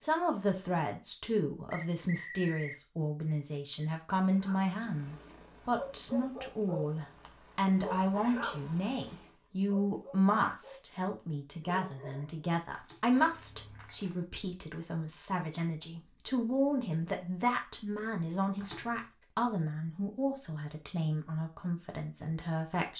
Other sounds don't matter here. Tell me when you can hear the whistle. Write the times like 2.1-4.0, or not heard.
1.7-2.8.